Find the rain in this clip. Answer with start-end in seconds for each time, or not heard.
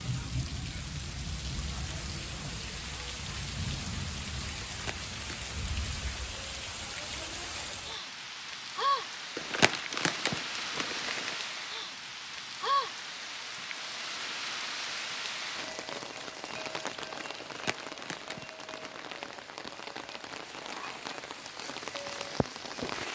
0.0-23.0.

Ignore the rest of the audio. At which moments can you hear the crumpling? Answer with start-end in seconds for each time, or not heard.
4.7-5.5, 9.3-11.3, 17.4-19.4.